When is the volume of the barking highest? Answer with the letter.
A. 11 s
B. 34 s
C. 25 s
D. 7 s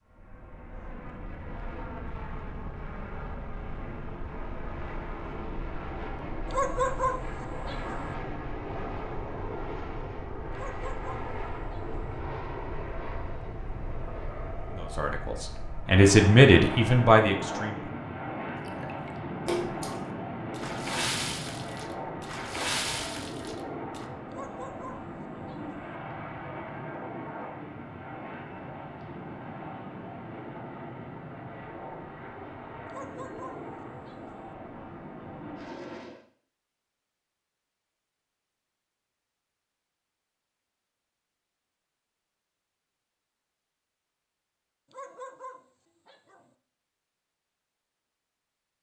D.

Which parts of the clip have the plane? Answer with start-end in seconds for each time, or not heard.
0.0-36.2.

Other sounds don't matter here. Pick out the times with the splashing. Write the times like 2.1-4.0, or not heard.
18.6-24.1.